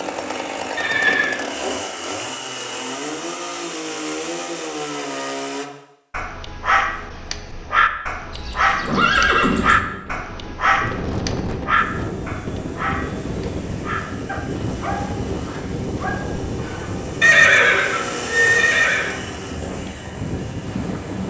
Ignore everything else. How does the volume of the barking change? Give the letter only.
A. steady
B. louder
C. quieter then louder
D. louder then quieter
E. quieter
E.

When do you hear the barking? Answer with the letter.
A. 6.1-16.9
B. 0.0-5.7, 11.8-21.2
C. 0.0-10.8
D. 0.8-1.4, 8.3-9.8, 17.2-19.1
A.